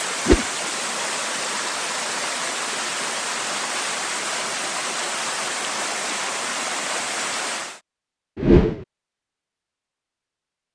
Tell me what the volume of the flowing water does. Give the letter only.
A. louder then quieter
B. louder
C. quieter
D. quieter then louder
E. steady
E.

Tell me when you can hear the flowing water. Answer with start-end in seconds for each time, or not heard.
0.0-7.8.